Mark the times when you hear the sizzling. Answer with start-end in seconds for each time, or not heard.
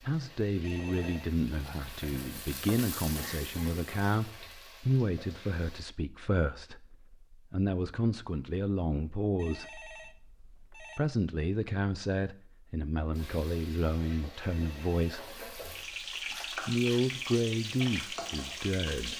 0.0-5.9, 13.1-19.1.